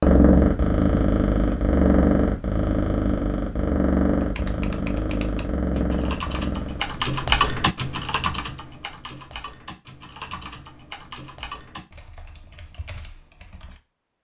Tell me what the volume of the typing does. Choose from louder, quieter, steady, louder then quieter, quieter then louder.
louder then quieter.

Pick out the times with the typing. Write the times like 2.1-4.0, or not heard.
4.2-13.8.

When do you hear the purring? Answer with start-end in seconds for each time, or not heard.
0.0-7.0.